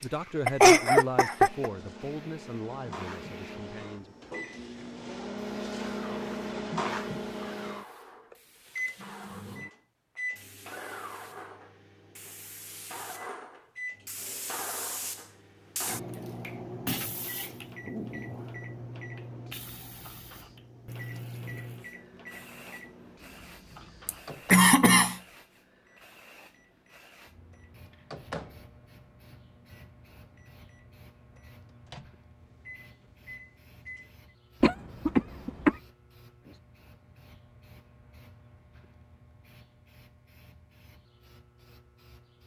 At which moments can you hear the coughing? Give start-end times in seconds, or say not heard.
0.0-1.7, 24.1-25.1, 34.6-35.8.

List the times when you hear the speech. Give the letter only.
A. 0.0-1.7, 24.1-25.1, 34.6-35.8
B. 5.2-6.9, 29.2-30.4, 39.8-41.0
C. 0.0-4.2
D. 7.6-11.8
C.